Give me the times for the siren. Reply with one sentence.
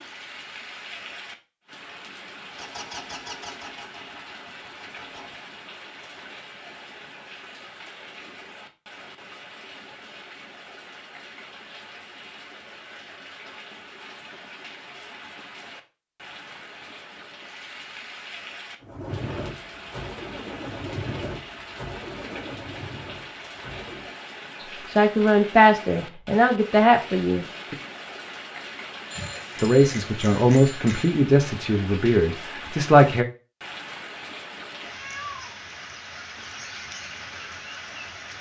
You can't hear the siren here.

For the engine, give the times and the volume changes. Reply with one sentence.
The engine can be heard briefly from 2.5 to 5.5 s; and from 18.8 to 24.1 s, getting quieter.